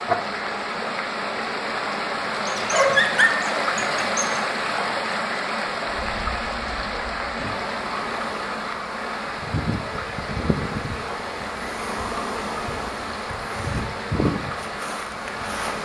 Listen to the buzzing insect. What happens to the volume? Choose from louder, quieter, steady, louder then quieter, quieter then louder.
louder.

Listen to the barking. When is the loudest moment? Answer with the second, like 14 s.
3 s.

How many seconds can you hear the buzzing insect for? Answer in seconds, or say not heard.
16 s.